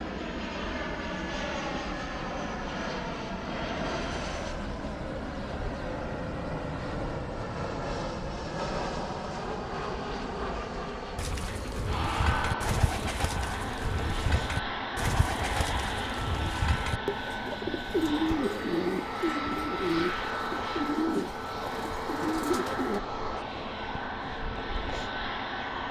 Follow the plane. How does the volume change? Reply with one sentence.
The volume of the plane stays about the same.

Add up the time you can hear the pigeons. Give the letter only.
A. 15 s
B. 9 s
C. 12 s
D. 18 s
C.